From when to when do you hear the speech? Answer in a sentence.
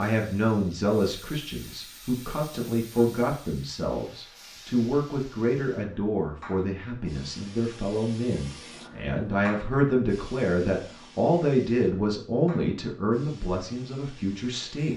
The speech can be heard from 0.0 to 14.9 s.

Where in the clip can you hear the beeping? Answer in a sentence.
The beeping can't be heard in this clip.